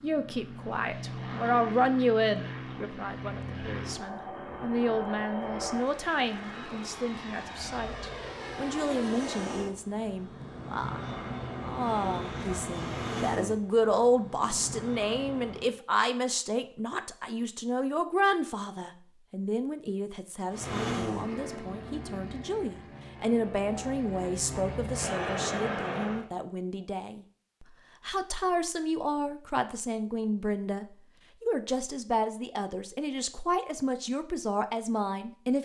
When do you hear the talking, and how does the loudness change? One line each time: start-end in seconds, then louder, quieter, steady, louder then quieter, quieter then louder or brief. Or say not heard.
0.0-35.6 steady.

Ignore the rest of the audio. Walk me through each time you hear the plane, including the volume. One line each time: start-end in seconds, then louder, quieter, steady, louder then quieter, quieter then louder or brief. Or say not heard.
0.0-15.8 steady
20.5-26.2 quieter then louder.